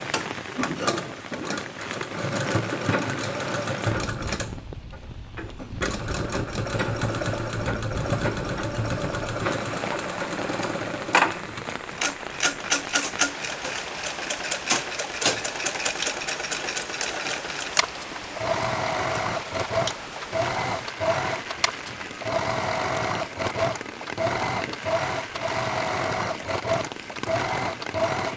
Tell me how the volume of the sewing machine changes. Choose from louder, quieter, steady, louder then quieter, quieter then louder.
steady.